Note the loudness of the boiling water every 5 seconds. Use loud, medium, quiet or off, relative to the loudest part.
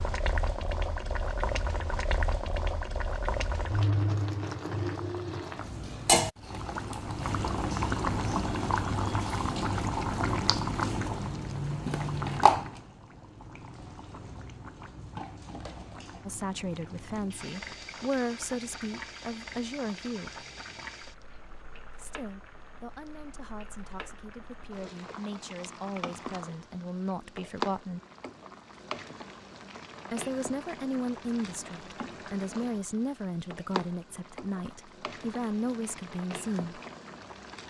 loud, loud, loud, quiet, quiet, medium, quiet, quiet.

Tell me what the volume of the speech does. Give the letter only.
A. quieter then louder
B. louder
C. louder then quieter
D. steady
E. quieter
A.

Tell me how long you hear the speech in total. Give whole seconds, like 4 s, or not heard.
17 s.